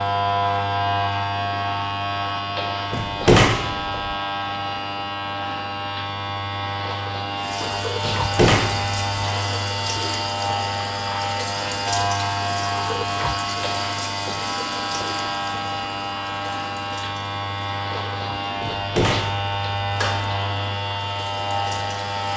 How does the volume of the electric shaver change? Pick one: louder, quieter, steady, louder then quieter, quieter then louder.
steady.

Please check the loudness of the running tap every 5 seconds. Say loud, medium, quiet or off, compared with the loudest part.
off, loud, loud, medium, medium.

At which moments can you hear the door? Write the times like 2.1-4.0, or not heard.
2.9-4.2, 8.0-9.2, 18.6-20.4.